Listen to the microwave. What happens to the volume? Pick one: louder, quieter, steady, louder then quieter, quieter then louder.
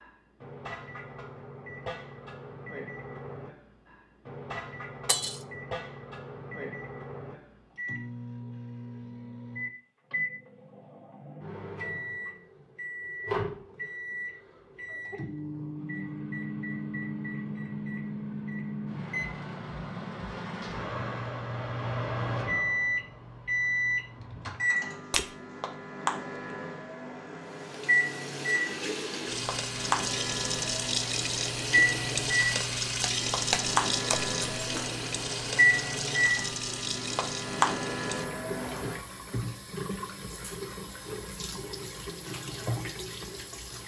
louder.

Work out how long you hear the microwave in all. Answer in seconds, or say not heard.
39 s.